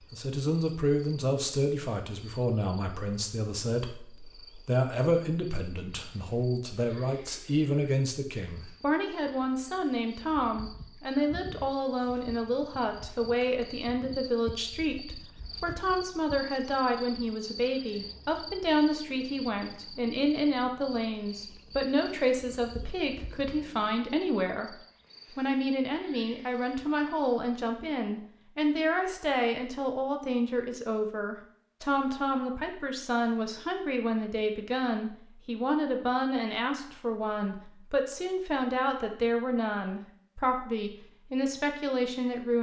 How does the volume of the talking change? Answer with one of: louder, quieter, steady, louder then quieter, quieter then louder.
steady.